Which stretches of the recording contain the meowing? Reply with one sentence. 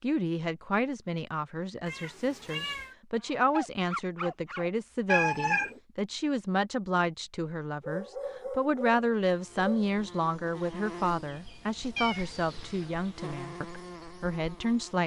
You can hear the meowing from 1.9 to 3.0 s, from 5.0 to 5.8 s and from 11.9 to 12.9 s.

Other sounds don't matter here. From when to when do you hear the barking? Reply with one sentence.
You can hear the barking from 3.2 to 4.7 s and from 7.8 to 10.0 s.